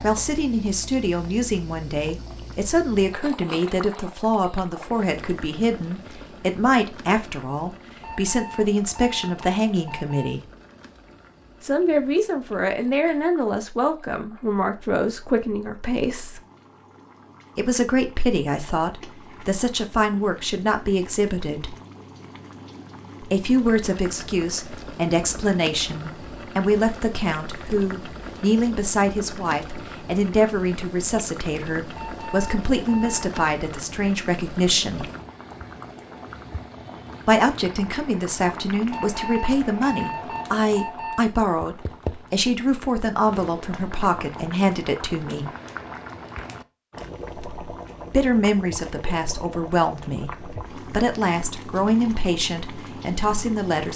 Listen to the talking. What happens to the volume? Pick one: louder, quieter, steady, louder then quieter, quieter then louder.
steady.